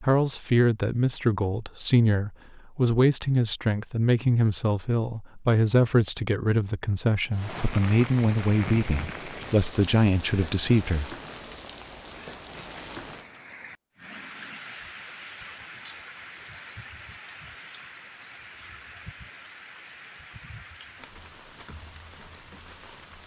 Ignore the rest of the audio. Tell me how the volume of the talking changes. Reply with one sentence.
The loudness of the talking stays about the same.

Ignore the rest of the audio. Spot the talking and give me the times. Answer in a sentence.
You can hear the talking from 0.0 to 11.1 s.